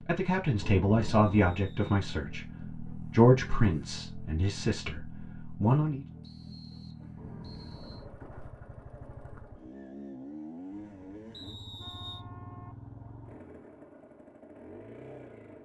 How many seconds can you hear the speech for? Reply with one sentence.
You can hear the speech for 6 seconds altogether.